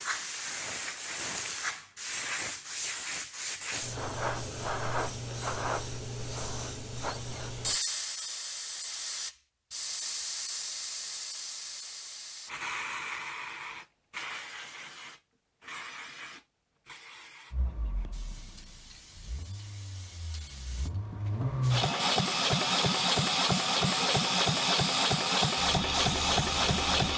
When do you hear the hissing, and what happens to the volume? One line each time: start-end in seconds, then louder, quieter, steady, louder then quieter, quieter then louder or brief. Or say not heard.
0.0-27.1 quieter then louder.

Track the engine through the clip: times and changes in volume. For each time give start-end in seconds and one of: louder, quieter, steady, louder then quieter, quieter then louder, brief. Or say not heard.
17.5-27.1 louder.